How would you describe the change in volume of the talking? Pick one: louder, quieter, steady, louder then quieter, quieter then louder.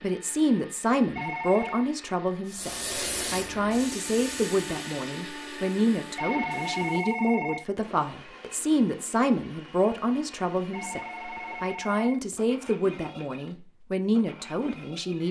steady.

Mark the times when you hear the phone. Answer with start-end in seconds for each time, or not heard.
1.1-1.9, 6.2-8.0, 10.7-12.5.